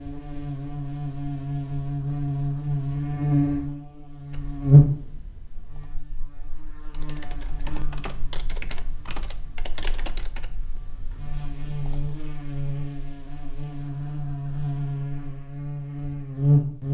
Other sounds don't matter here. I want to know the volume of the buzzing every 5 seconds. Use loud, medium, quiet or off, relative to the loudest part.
loud, quiet, medium, loud.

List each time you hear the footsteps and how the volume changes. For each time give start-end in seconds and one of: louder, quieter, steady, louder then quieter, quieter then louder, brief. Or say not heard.
not heard.